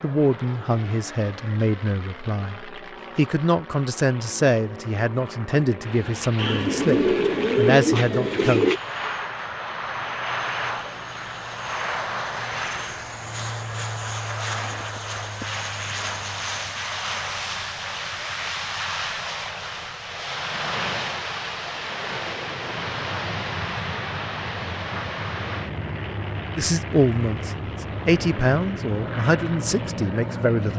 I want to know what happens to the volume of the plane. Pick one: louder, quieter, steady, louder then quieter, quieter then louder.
louder.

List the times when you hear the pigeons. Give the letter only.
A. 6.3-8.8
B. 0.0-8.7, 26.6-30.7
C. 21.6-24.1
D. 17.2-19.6
A.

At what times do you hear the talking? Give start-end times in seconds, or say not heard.
0.0-8.7, 26.6-30.7.